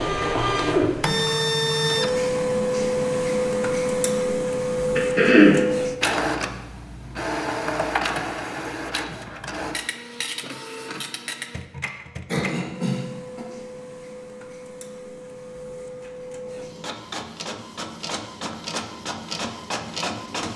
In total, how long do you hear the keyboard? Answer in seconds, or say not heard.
not heard.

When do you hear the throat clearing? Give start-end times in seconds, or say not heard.
5.0-5.6, 12.2-13.4.